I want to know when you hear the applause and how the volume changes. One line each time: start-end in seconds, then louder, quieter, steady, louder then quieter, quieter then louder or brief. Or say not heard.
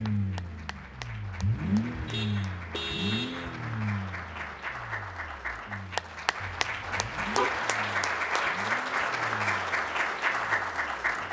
0.0-11.2 louder.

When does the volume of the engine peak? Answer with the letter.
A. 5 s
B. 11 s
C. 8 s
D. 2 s
D.